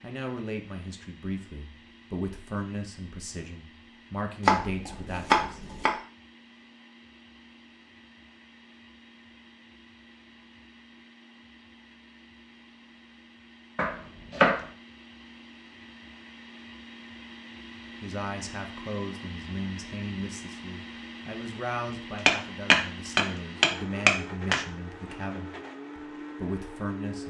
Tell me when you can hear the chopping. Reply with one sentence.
The chopping can be heard from 4.4 to 6.0 s, from 13.8 to 14.6 s and from 22.2 to 24.6 s.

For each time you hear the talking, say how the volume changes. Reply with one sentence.
The talking can be heard from 0.0 to 5.6 s, at a steady volume; and from 18.0 to 27.2 s, at a steady volume.